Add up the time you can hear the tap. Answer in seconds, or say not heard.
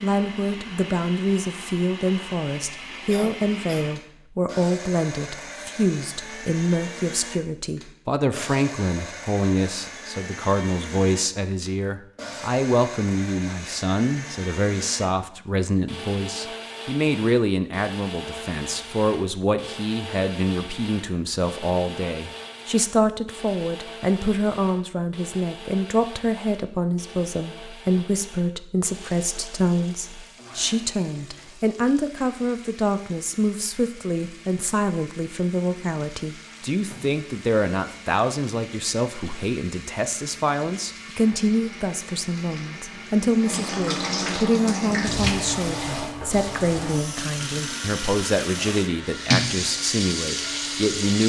22 s.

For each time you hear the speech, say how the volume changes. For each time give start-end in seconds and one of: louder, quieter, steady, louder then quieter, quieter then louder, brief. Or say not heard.
0.0-51.2 steady.